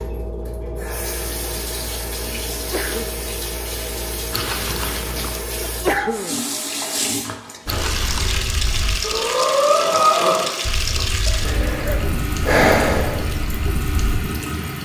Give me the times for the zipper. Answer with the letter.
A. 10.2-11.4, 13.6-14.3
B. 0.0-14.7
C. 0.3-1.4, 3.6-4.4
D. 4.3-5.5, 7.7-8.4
D.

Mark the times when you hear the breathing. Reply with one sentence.
The breathing can be heard from 7.7 to 14.1 s.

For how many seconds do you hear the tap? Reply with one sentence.
You can hear the tap for 15 seconds altogether.